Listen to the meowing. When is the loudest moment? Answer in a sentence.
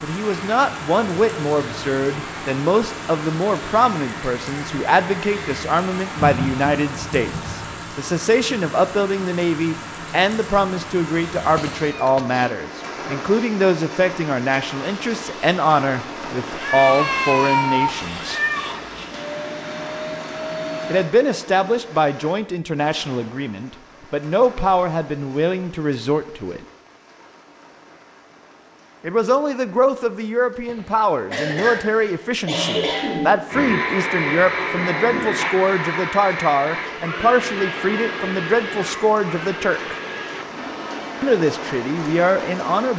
The volume of the meowing peaks at 18 seconds.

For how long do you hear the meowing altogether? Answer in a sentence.
The meowing can be heard for 4 seconds in total.